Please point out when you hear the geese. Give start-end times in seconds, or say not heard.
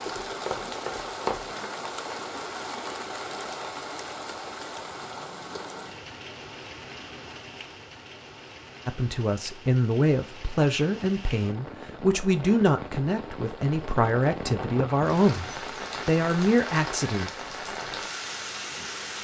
not heard.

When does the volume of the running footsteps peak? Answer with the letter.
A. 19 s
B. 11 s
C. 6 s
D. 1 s
D.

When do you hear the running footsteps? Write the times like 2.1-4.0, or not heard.
0.0-1.4.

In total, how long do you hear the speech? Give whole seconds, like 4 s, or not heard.
8 s.